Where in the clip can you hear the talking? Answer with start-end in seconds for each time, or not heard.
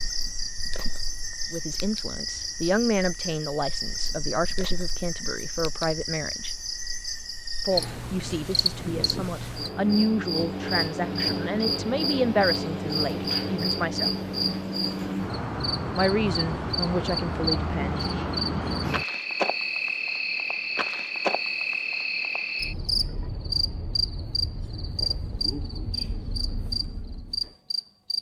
1.5-6.5, 7.7-14.1, 15.9-18.1.